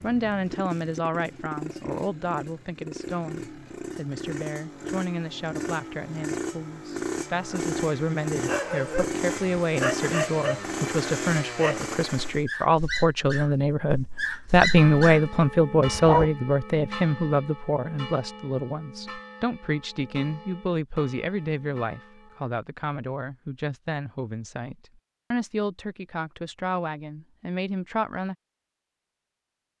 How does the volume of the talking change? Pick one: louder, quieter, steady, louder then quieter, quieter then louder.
louder then quieter.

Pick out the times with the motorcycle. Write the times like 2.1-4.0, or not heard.
0.0-12.4.